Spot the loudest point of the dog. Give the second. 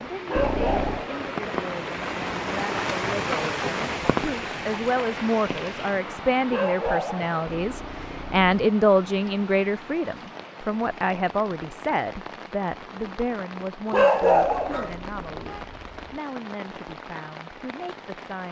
14 s.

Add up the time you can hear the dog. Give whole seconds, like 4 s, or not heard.
3 s.